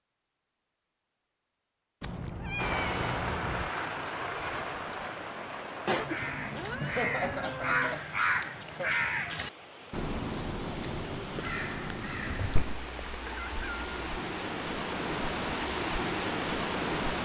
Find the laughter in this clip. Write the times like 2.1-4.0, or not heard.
6.8-8.9.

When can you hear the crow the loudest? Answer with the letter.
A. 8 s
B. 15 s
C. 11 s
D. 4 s
A.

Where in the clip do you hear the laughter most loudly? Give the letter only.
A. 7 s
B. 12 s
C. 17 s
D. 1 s
A.